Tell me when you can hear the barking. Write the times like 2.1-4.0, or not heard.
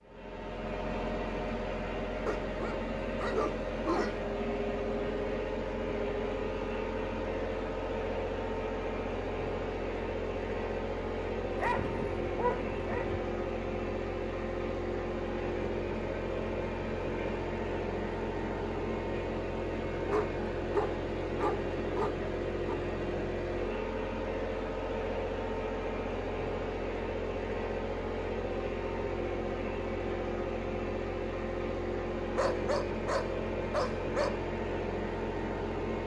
2.2-4.2, 11.6-13.2, 20.0-22.8, 32.4-34.3.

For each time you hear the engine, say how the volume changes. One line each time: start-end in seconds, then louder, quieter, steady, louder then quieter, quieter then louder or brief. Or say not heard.
0.0-36.0 steady.